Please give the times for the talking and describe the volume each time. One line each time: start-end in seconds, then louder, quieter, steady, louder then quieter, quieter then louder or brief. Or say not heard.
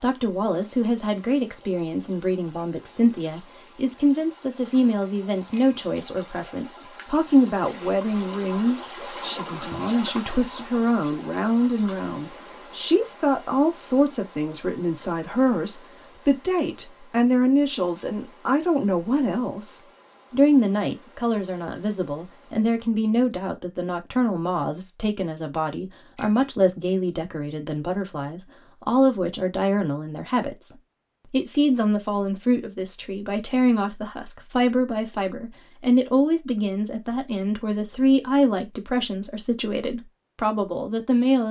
0.0-41.4 steady.